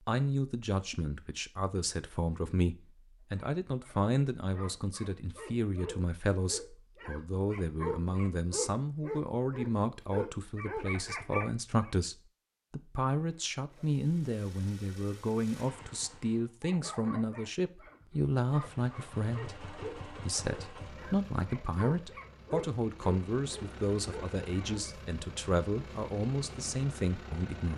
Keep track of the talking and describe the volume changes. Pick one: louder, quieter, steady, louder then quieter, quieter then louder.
steady.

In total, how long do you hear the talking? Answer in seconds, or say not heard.
28 s.